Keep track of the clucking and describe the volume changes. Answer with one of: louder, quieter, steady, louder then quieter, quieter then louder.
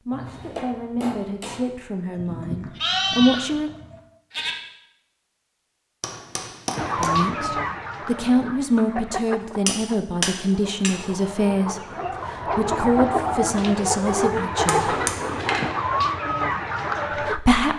quieter then louder.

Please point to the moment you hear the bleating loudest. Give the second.
3 s.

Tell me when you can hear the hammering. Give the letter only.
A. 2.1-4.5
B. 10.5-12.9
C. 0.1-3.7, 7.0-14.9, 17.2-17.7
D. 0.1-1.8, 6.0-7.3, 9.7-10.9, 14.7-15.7
D.